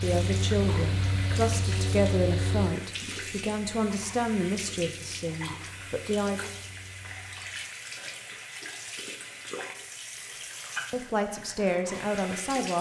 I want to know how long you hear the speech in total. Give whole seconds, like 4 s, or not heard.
8 s.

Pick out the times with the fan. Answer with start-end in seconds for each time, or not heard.
0.0-7.7.